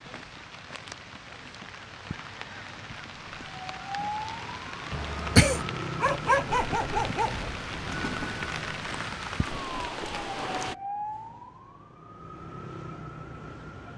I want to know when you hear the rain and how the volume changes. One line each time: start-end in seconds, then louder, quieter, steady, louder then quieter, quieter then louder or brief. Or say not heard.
0.0-10.8 louder.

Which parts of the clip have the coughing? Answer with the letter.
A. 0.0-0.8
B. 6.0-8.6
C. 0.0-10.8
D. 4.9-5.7
D.